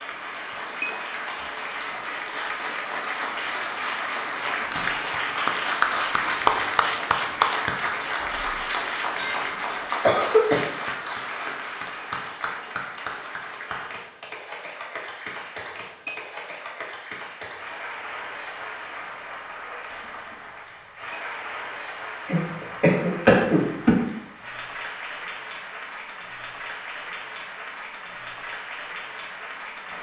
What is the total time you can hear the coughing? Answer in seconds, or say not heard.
4 s.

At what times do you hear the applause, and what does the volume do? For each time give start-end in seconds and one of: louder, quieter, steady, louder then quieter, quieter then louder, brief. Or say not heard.
0.0-29.9 quieter.